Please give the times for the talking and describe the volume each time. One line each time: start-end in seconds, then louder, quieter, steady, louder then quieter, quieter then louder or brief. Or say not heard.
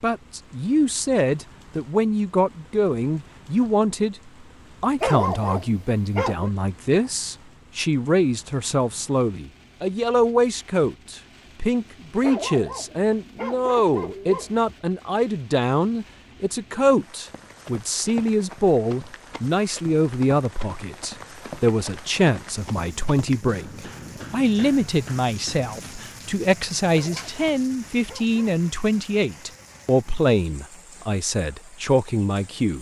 0.0-4.2 steady
4.8-32.7 steady.